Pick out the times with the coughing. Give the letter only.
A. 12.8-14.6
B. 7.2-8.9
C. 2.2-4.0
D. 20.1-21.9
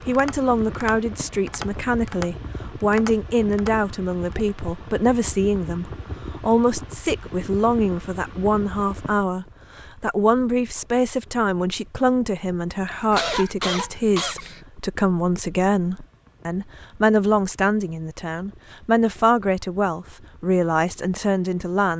A.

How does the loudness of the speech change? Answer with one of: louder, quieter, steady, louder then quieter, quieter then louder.
steady.